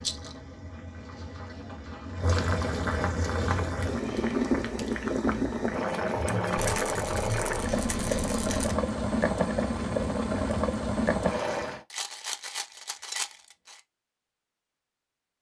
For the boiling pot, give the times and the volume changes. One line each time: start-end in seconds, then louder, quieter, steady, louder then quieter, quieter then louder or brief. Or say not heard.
0.0-11.8 louder.